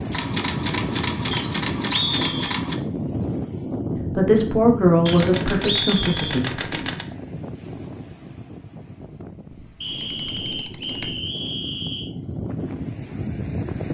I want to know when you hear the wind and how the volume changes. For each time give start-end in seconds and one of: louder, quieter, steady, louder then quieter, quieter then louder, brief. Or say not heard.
0.0-13.9 quieter then louder.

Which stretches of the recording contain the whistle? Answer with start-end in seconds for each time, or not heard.
1.3-2.4, 5.0-6.5, 9.8-12.1.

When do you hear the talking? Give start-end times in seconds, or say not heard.
4.2-6.5.